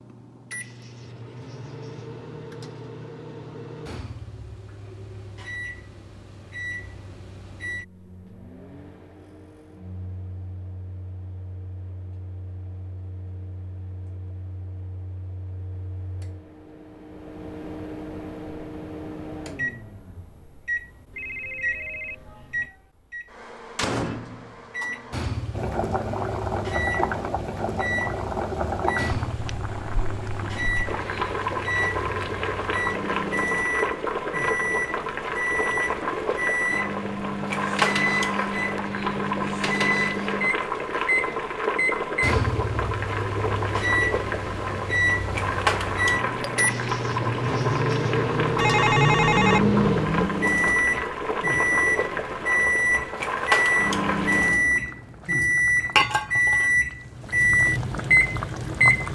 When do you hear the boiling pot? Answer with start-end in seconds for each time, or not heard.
25.5-59.1.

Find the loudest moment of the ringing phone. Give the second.
49 s.